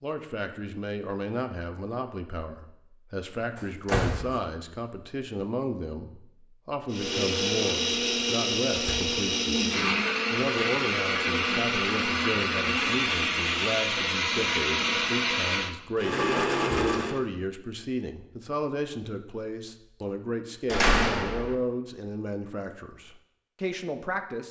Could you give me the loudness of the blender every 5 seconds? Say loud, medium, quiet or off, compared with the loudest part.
off, loud, loud, loud, off.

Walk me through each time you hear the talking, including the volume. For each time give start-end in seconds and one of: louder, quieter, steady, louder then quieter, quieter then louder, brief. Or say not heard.
0.0-24.4 steady.